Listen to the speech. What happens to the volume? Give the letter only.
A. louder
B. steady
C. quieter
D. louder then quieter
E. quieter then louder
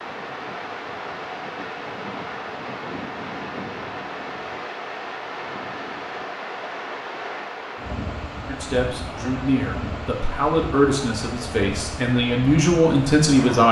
A.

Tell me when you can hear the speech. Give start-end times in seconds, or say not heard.
8.4-13.6.